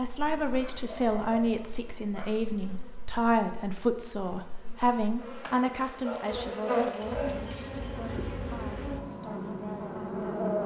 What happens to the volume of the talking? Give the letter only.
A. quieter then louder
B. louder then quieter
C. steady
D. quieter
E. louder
D.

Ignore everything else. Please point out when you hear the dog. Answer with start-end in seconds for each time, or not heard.
0.6-2.3, 6.0-7.7.